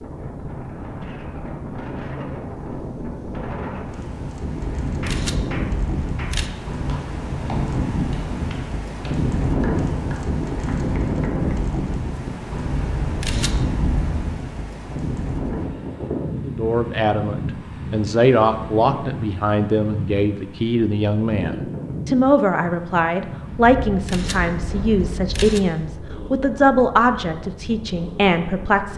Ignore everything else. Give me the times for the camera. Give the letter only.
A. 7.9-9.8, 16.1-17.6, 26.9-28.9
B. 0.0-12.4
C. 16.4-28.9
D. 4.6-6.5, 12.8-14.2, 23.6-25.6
D.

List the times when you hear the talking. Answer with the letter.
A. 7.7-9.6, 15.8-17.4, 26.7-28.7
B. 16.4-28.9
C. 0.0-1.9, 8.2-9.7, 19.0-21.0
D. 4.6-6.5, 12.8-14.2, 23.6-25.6
B.